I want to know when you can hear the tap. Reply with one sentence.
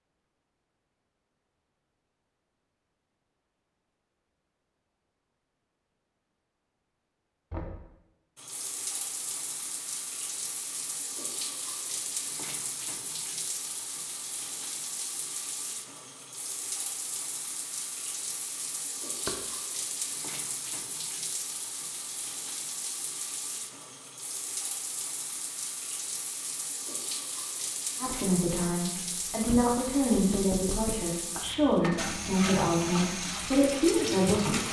You can hear the tap from 8.3 to 34.6 s.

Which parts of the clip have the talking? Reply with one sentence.
You can hear the talking from 28.0 to 34.6 s.